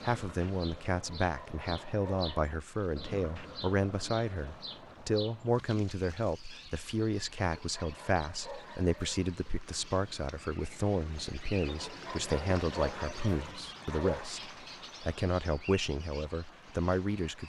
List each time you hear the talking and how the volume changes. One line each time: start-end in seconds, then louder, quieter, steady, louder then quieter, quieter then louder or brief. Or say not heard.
0.0-17.4 steady.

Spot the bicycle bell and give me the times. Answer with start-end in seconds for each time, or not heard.
not heard.